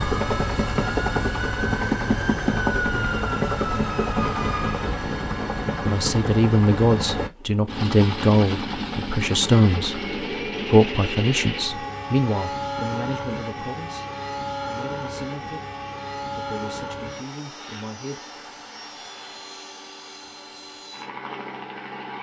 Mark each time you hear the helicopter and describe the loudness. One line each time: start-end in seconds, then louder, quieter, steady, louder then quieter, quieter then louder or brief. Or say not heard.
0.0-22.1 quieter.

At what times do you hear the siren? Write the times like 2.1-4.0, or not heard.
0.0-4.9.